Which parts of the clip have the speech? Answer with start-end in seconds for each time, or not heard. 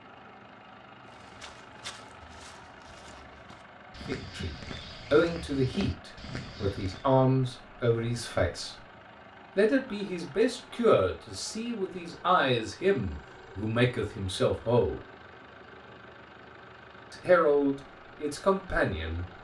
4.0-8.8, 9.6-15.0, 17.1-19.3.